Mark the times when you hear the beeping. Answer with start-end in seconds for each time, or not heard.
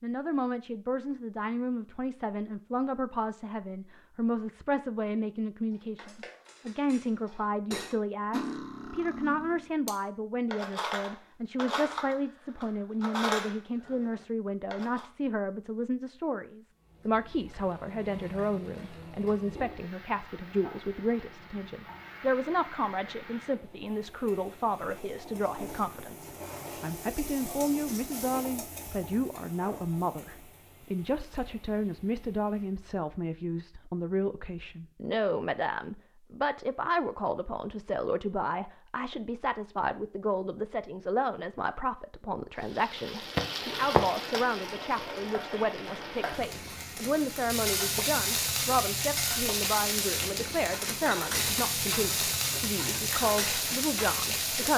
not heard.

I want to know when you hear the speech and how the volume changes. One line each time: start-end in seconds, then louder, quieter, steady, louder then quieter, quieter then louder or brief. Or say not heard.
0.0-54.7 steady.